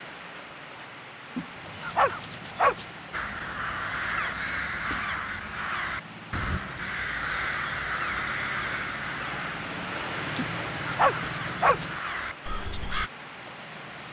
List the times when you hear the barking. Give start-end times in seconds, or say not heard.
1.4-2.9, 10.3-11.9.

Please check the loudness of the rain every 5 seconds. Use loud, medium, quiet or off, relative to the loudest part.
medium, loud, loud.